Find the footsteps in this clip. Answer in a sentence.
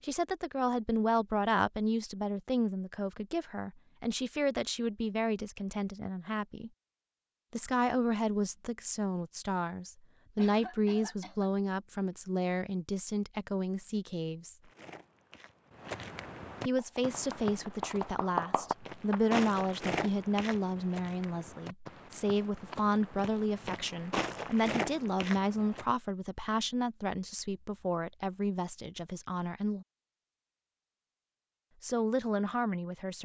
You can hear the footsteps from 14.6 to 25.9 s.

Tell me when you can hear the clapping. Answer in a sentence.
You can hear the clapping from 16.8 to 19.2 s.